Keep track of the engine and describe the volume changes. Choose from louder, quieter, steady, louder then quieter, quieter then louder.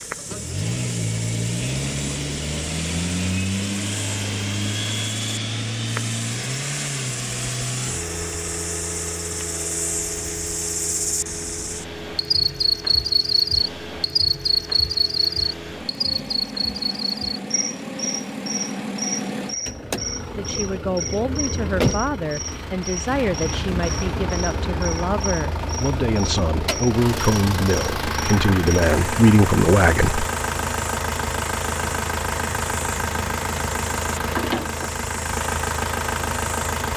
quieter then louder.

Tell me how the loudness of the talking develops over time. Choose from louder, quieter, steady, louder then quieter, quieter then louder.
louder.